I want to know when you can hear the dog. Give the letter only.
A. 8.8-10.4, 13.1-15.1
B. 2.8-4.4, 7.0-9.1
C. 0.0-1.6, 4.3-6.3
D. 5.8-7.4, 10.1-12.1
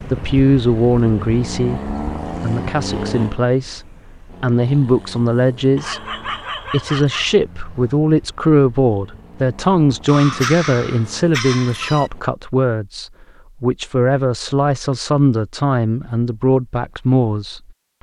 D.